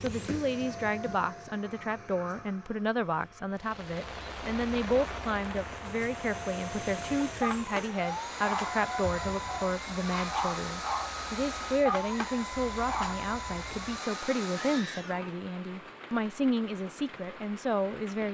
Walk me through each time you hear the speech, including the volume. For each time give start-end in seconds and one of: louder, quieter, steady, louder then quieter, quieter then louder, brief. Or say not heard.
0.0-18.2 steady.